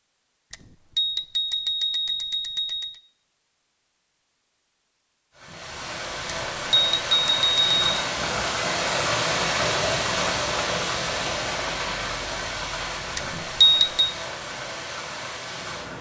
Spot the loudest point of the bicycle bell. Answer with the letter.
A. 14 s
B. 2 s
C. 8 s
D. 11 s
A.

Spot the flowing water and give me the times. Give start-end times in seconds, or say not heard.
5.3-15.9.